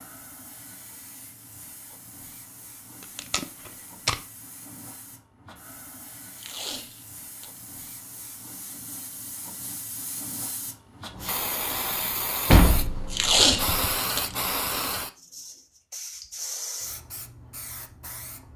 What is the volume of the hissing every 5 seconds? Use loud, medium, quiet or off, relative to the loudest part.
quiet, quiet, loud, medium.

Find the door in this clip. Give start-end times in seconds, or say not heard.
12.5-13.9.